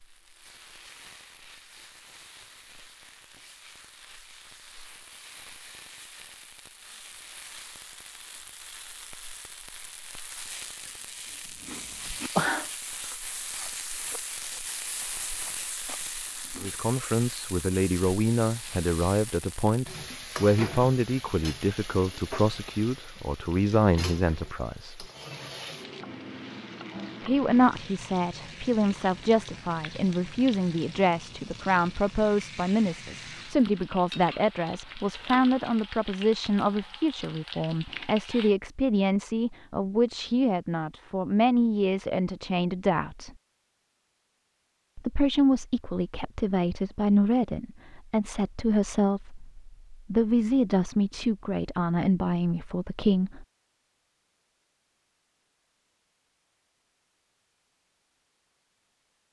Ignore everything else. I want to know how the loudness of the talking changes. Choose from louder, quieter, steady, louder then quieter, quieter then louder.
steady.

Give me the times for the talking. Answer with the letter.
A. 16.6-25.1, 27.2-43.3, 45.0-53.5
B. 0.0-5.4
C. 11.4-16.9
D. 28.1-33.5
A.